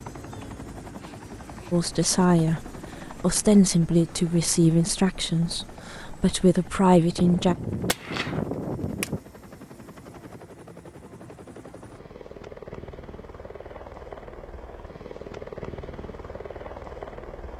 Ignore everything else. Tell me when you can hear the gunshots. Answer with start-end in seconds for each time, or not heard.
7.2-9.2.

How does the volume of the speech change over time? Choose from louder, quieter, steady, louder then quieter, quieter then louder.
quieter then louder.